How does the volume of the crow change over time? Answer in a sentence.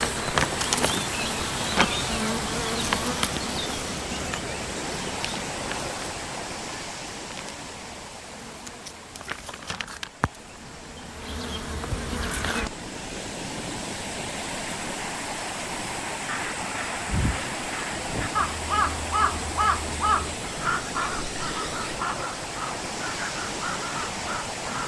The volume of the crow goes up, then down.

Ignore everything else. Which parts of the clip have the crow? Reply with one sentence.
The crow can be heard from 16.2 to 24.8 s.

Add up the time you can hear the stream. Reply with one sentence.
The stream can be heard for 25 seconds in total.